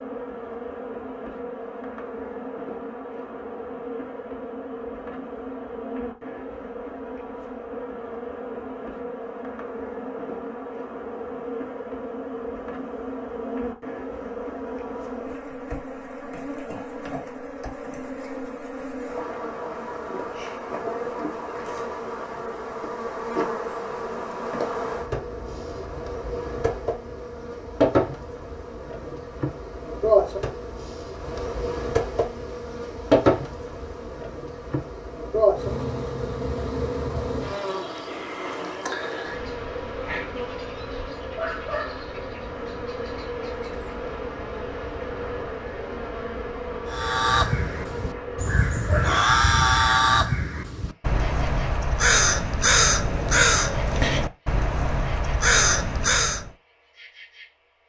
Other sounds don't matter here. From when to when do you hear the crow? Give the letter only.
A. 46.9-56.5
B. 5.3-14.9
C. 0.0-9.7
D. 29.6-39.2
A.